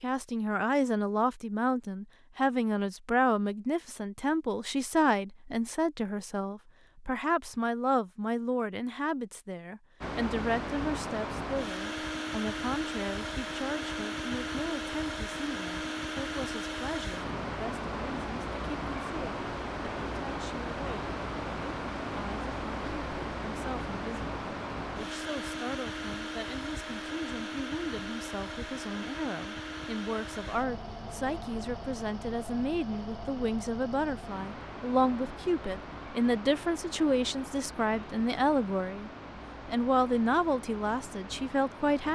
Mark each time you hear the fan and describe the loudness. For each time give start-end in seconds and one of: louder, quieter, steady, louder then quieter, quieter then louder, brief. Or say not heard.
10.0-42.1 quieter.